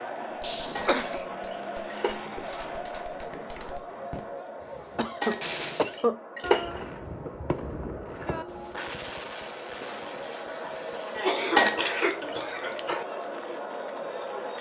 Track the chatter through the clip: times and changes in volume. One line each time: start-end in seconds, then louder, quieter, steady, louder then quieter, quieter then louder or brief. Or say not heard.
0.0-14.5 quieter then louder.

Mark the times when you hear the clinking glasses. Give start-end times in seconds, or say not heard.
0.8-2.1, 5.2-6.8, 11.6-12.3.